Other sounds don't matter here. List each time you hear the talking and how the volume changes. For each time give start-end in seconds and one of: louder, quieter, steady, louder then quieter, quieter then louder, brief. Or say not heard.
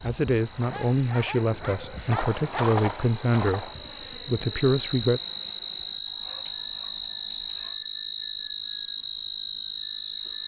0.0-5.2 steady.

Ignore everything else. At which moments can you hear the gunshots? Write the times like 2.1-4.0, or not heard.
2.1-3.8.